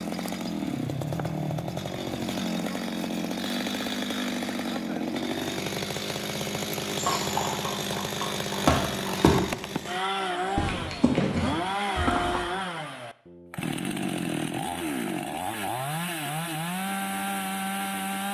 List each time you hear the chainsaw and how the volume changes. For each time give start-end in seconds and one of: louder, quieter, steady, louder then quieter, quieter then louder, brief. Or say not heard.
0.0-18.3 steady.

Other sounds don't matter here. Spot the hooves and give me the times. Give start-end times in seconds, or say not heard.
7.0-12.4.